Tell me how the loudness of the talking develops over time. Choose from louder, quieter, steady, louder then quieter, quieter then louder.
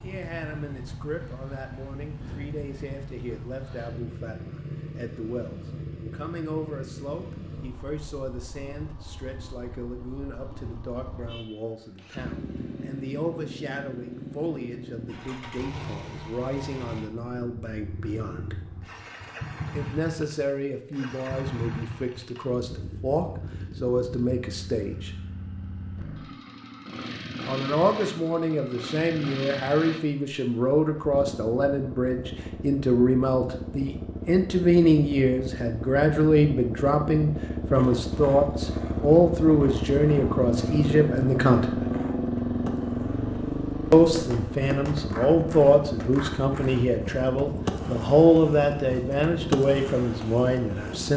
louder.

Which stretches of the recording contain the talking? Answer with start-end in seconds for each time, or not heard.
0.0-18.6, 19.7-25.1, 27.4-41.9, 43.9-51.1.